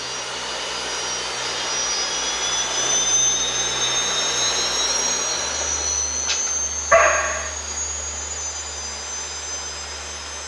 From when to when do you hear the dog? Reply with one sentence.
The dog can be heard from 6.2 to 7.5 s.